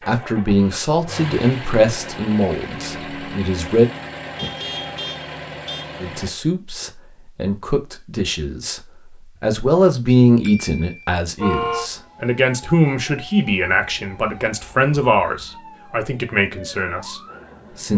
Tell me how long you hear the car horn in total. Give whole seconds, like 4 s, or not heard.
3 s.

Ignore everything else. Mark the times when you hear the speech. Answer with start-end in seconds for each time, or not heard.
0.1-3.9, 6.0-17.9.